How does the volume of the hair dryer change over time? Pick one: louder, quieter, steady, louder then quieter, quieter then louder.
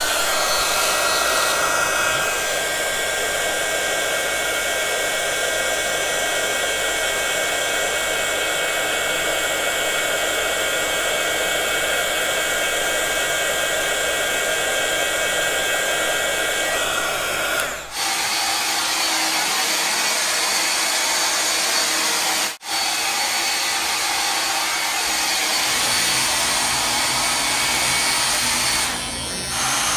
steady.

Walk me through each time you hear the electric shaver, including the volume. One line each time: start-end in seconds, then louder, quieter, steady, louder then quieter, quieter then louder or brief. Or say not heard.
0.0-1.7 brief
25.6-29.9 steady.